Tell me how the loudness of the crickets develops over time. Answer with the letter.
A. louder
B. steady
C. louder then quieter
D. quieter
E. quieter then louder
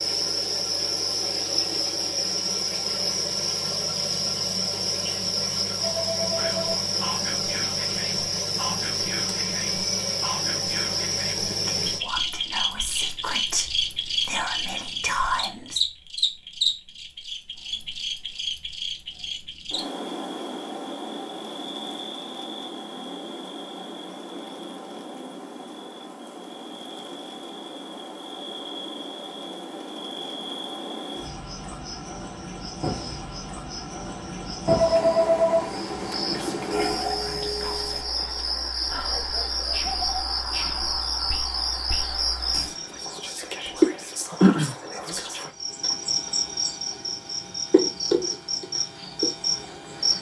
E.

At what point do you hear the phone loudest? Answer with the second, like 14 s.
35 s.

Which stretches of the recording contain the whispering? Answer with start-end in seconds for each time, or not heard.
6.3-15.8, 36.2-45.5.